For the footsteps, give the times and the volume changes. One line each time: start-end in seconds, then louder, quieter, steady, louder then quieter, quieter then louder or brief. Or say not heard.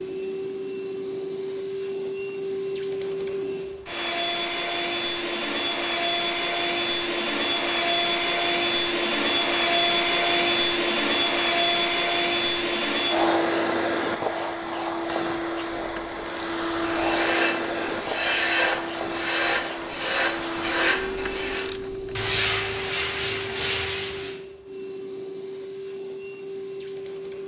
not heard.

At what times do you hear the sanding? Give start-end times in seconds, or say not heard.
16.8-24.4.